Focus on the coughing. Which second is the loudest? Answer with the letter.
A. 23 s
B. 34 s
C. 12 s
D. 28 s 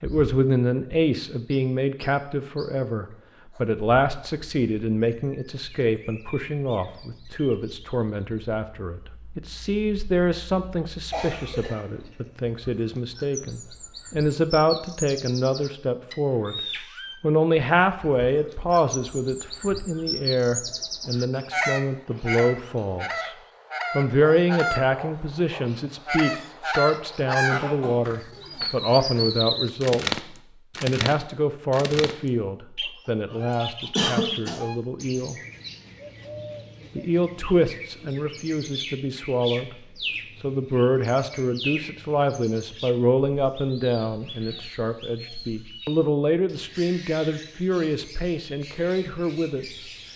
B.